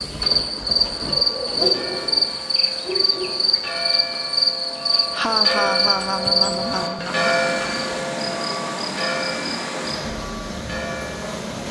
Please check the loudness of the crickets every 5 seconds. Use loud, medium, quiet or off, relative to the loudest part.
loud, loud, off.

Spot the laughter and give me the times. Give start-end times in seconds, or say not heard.
5.1-7.3.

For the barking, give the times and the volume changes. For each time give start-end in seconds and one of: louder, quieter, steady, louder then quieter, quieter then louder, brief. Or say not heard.
not heard.